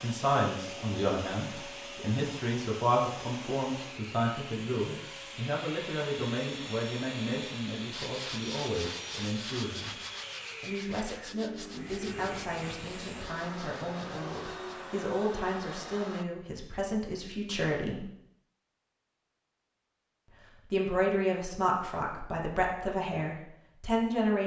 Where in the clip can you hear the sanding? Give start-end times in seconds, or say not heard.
7.9-14.6.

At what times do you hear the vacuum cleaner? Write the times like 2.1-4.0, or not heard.
0.0-16.2.